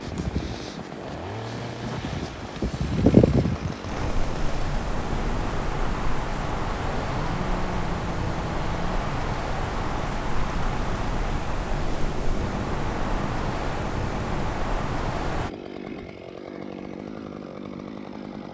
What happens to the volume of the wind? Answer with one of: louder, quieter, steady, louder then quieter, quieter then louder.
quieter.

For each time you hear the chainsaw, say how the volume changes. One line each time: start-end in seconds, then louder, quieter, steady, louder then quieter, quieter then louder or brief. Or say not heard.
0.0-18.4 steady.